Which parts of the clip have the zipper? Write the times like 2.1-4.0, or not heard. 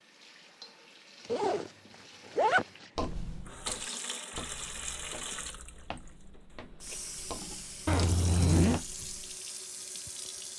1.2-1.7, 2.4-3.0, 7.8-8.8.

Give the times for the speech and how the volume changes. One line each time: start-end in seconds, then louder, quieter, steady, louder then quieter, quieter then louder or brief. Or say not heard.
not heard.